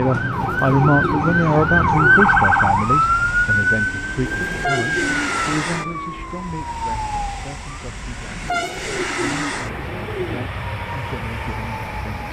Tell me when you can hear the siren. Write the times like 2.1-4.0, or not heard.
0.0-7.7.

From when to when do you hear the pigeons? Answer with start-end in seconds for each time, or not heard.
0.3-2.4, 4.2-5.9, 8.4-10.5.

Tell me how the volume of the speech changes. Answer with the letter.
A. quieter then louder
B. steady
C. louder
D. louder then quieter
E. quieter
E.